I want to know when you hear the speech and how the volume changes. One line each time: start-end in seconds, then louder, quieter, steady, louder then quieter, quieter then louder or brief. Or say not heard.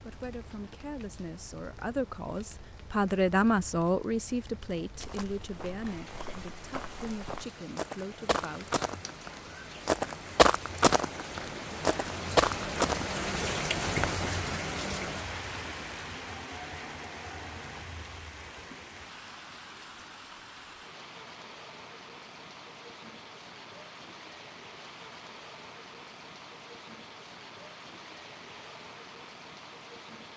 0.0-8.8 louder then quieter.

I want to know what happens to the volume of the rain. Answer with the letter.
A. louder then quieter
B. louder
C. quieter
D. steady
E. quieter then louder
A.